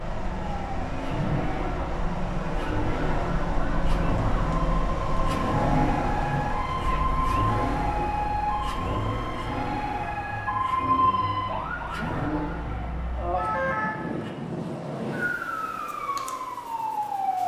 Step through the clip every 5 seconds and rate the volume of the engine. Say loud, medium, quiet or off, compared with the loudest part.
loud, loud, loud, off.